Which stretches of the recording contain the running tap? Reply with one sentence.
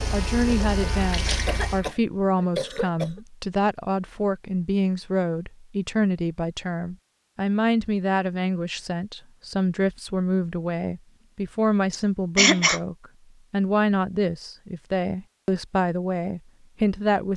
The running tap can be heard from 0.0 to 1.8 s.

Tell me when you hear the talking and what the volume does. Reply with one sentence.
You can hear the talking from 0.0 to 17.3 s, at a steady volume.